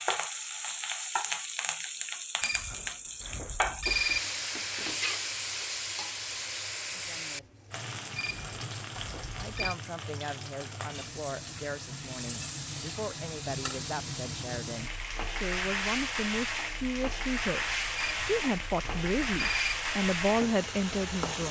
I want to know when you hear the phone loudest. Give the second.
4 s.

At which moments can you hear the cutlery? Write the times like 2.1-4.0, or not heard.
not heard.